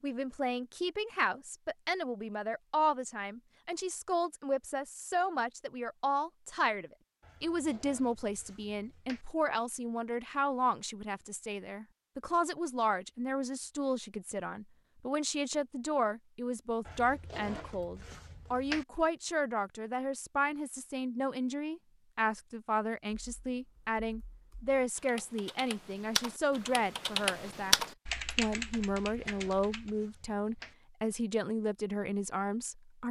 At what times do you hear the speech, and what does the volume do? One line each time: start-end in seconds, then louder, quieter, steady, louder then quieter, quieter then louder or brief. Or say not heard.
0.0-33.0 steady.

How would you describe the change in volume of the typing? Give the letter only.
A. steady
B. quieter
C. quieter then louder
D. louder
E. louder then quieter
E.